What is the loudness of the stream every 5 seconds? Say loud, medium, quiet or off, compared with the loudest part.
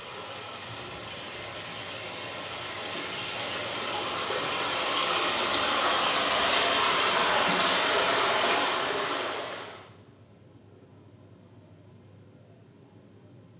medium, loud, off.